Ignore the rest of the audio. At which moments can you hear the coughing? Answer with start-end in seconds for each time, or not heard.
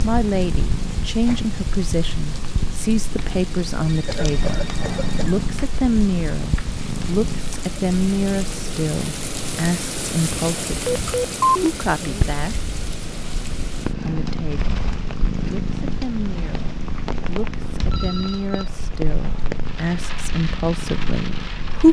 4.0-5.4.